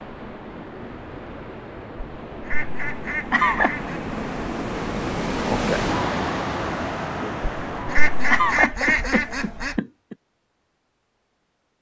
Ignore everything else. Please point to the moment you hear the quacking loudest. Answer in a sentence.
The volume of the quacking peaks at 9 seconds.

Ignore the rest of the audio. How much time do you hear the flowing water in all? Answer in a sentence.
You can hear the flowing water for 9 seconds altogether.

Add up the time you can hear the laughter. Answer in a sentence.
You can hear the laughter for 3 seconds altogether.